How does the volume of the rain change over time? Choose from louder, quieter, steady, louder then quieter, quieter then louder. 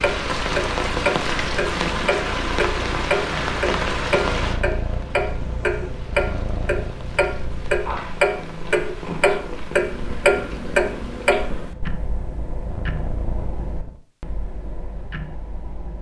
quieter.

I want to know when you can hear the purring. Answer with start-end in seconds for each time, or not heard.
0.0-14.0.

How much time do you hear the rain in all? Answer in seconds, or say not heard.
11 s.